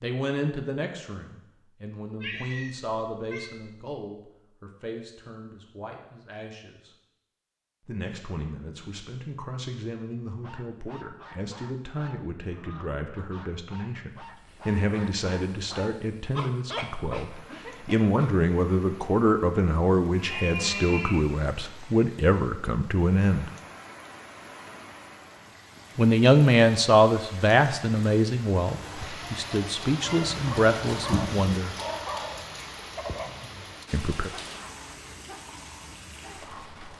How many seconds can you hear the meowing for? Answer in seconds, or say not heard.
4 s.